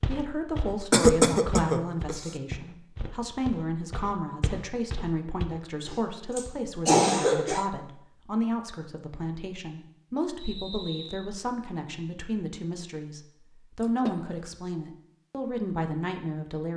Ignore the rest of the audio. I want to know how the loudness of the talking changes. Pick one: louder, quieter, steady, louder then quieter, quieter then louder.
steady.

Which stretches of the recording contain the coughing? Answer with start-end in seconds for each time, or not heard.
0.9-2.3, 5.8-7.7, 13.8-14.4.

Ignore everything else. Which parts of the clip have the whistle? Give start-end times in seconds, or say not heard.
10.3-11.2.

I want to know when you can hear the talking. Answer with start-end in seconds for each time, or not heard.
0.1-16.7.